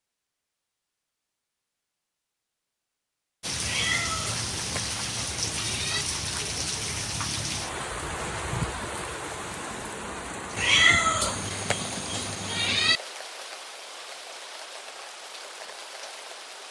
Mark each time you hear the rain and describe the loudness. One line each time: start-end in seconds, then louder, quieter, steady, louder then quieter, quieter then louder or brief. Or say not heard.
3.4-16.6 quieter.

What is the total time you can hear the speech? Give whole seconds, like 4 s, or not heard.
not heard.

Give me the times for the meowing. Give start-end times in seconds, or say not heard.
3.6-6.0, 10.6-13.0.